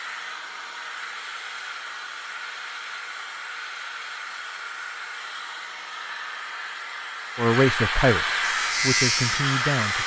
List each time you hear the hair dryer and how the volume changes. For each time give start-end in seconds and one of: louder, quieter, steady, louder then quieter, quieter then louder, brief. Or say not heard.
0.0-10.0 louder.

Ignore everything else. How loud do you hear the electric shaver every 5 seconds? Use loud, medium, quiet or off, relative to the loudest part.
off, loud.